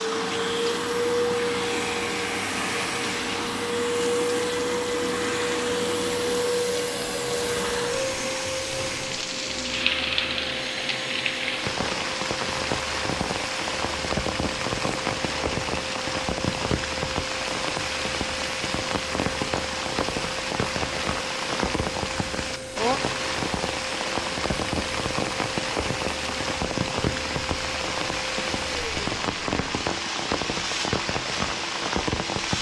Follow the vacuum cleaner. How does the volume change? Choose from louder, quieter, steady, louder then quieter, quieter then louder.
quieter.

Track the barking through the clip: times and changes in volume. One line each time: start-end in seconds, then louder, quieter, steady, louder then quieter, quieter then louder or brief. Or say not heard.
not heard.